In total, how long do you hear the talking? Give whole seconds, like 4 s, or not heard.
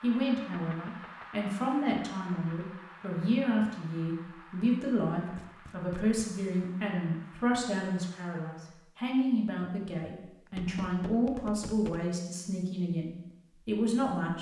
14 s.